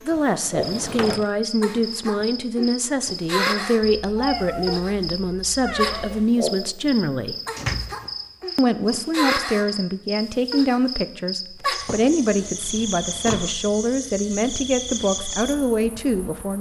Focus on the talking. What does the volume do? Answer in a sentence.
The loudness of the talking stays about the same.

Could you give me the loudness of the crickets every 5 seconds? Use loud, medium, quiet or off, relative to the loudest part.
loud, loud, loud, medium.